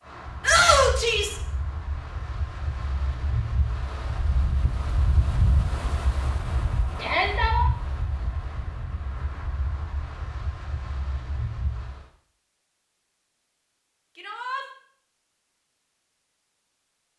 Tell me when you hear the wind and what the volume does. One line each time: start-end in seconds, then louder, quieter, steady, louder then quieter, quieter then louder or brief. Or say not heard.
0.0-12.1 louder then quieter.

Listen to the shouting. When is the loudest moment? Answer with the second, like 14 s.
1 s.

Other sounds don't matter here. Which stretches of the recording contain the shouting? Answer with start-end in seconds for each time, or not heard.
0.4-1.4, 7.0-7.7, 14.2-14.7.